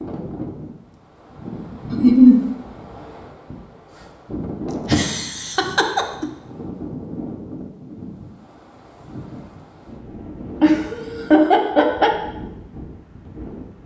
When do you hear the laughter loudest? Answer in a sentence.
The loudest moment of the laughter is at 2 seconds.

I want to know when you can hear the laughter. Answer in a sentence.
You can hear the laughter from 1.9 to 2.4 s, from 4.8 to 6.2 s and from 10.6 to 12.1 s.